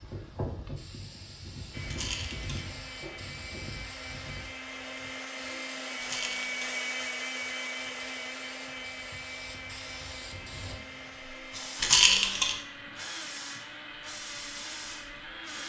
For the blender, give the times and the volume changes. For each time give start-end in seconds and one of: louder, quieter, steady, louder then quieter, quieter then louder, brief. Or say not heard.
1.7-15.6 louder then quieter.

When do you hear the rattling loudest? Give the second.
12 s.